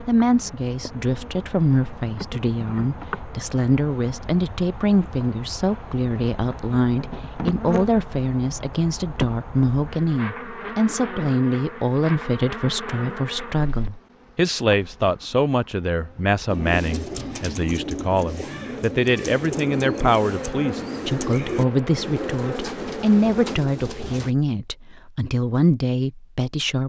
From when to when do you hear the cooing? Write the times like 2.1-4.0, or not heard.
16.4-24.4.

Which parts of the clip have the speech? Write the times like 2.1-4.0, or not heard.
0.1-26.8.